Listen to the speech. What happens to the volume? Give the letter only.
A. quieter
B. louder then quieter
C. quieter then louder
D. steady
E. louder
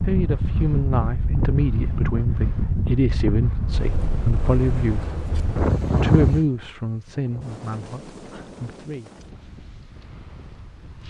A.